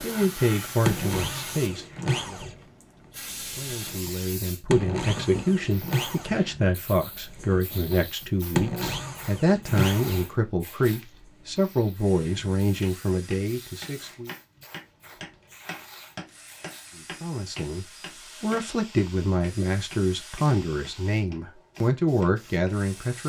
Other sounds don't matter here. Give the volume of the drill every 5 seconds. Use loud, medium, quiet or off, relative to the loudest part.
loud, loud, quiet, quiet, quiet.